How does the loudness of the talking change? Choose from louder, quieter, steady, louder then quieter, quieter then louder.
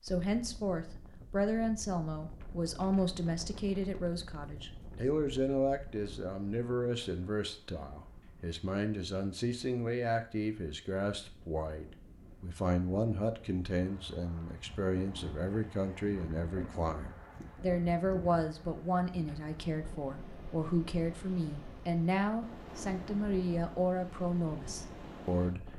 steady.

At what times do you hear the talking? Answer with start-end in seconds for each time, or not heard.
0.0-25.7.